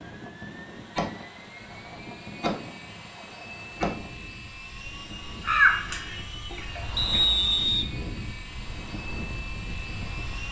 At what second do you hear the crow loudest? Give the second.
6 s.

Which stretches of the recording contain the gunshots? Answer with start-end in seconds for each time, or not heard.
0.9-4.1.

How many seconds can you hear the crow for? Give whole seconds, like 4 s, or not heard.
2 s.